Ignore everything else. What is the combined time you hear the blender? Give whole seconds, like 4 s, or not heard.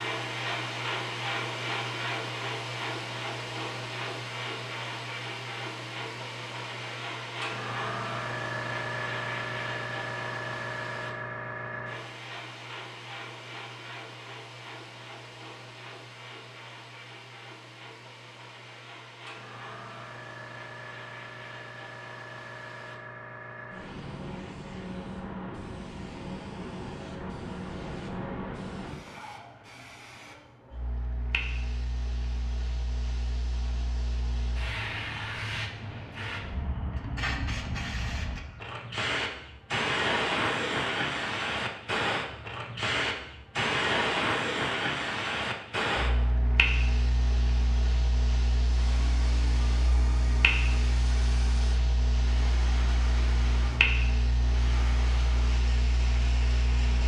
8 s.